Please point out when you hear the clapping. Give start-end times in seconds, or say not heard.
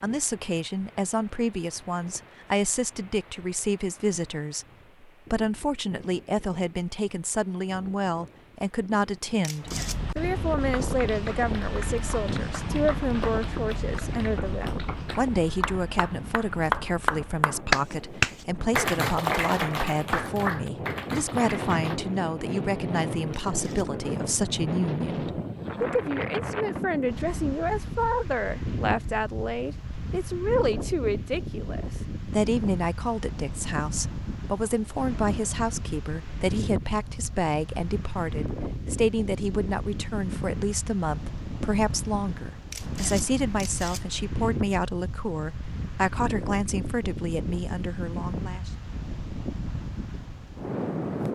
10.8-22.0.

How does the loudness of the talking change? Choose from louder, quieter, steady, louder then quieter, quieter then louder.
steady.